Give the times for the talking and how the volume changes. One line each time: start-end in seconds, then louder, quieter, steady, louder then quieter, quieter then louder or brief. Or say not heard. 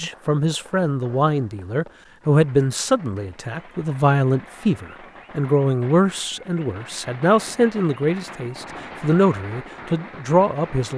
0.0-10.9 steady.